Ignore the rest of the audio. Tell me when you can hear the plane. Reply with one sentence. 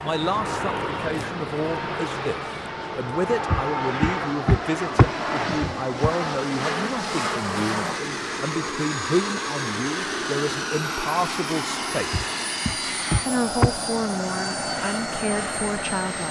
The plane can be heard from 0.0 to 16.2 s.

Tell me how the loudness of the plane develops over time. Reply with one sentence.
The loudness of the plane stays about the same.